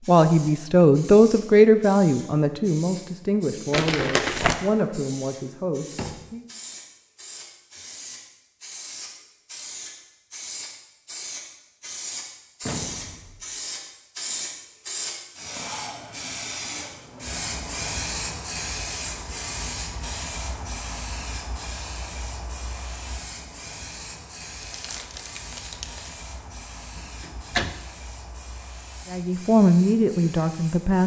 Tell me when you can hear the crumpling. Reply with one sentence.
You can hear the crumpling from 3.7 to 4.5 s and from 24.6 to 26.2 s.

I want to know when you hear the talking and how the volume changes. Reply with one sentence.
The talking can be heard from 0.1 to 6.5 s, getting quieter; and briefly from 29.1 to 31.0 s.